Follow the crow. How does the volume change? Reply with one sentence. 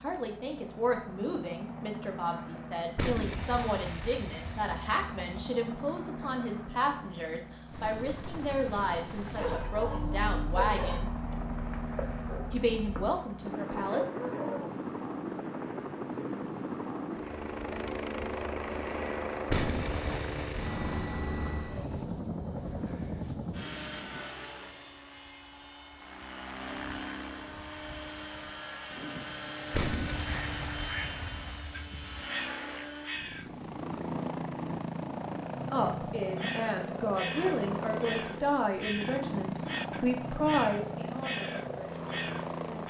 The volume of the crow stays about the same.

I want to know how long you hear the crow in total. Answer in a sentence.
You can hear the crow for 10 seconds altogether.